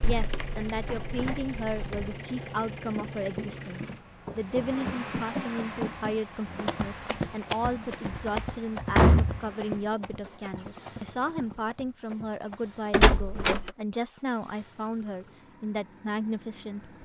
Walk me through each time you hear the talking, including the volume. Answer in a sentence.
You can hear the talking from 0.0 to 16.9 s, at a steady volume.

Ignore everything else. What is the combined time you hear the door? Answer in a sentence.
The door can be heard for 4 seconds in total.